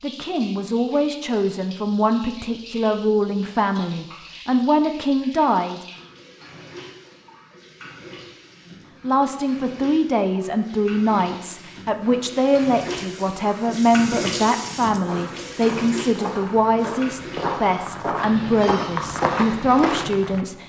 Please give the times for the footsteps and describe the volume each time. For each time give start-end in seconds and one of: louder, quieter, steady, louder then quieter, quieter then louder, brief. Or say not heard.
15.0-20.4 louder.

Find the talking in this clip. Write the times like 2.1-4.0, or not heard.
0.0-5.8, 9.0-20.6.